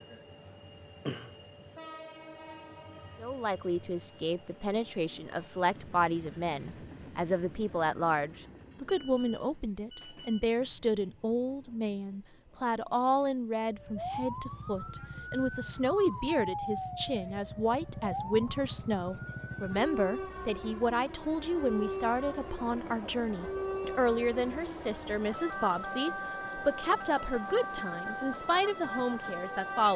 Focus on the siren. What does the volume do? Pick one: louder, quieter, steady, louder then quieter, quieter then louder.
steady.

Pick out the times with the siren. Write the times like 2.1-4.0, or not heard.
13.6-29.9.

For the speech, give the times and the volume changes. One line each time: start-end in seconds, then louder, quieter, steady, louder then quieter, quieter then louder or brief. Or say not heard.
3.2-29.9 steady.